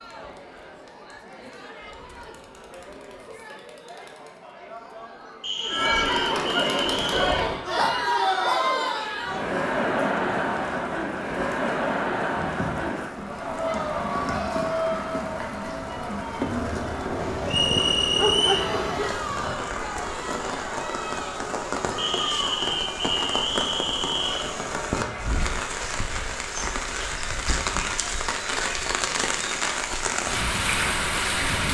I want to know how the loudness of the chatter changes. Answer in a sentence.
The volume of the chatter goes up, then down.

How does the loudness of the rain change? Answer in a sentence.
The volume of the rain goes up.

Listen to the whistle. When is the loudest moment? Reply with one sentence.
The volume of the whistle peaks at 18 seconds.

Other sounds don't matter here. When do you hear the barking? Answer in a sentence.
The barking can be heard from 7.8 to 8.7 s and from 17.1 to 19.8 s.